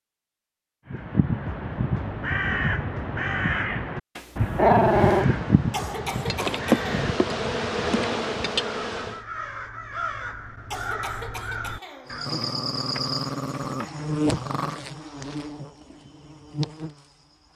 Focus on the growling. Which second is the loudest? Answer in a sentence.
The loudest moment of the growling is at 5 seconds.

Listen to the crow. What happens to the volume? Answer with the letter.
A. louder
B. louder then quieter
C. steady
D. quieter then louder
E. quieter
E.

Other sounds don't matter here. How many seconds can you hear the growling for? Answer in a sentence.
The growling can be heard for 4 seconds in total.